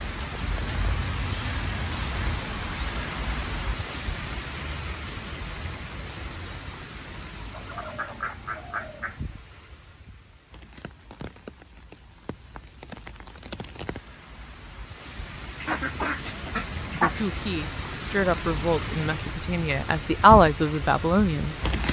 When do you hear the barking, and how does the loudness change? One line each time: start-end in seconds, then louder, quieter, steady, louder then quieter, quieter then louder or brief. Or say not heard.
not heard.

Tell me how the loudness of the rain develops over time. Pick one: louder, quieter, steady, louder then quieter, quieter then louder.
quieter then louder.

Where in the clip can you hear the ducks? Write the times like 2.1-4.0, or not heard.
0.4-2.4, 7.5-9.2, 15.6-17.3.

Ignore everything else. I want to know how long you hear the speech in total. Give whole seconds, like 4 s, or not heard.
5 s.